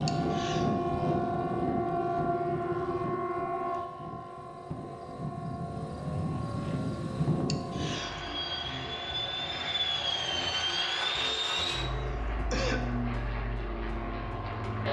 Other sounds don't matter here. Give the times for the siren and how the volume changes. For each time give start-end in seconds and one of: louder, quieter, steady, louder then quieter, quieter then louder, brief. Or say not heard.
0.0-14.8 quieter.